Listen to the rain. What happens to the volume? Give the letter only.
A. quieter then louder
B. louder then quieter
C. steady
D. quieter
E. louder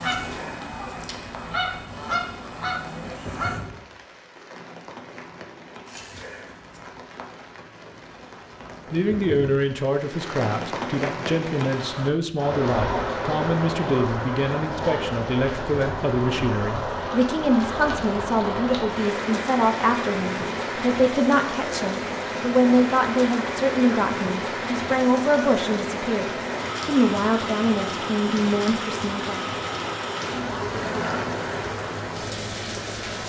E.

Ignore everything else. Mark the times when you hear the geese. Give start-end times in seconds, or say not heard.
0.0-3.6.